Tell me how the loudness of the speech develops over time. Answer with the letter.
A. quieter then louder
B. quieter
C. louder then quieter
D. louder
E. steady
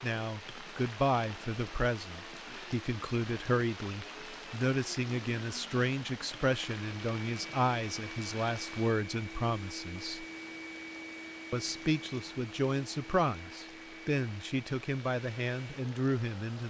E.